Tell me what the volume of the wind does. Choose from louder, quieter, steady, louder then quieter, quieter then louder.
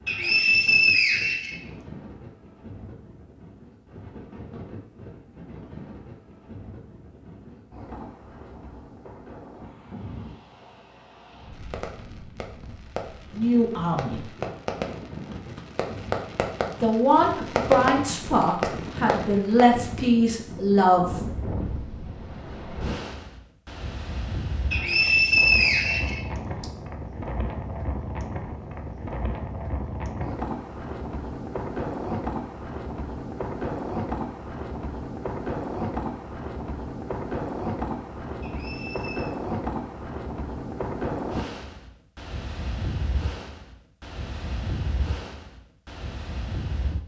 louder.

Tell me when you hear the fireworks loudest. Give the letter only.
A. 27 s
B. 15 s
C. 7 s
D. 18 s
D.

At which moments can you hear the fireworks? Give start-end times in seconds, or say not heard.
11.5-20.1.